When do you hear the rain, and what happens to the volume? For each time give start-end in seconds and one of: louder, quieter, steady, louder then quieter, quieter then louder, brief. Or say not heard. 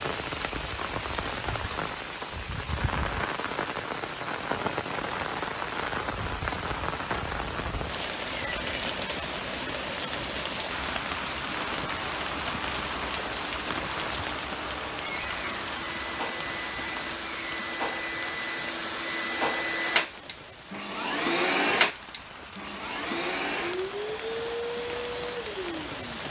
0.0-26.2 quieter.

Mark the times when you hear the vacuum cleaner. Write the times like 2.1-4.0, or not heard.
11.4-26.2.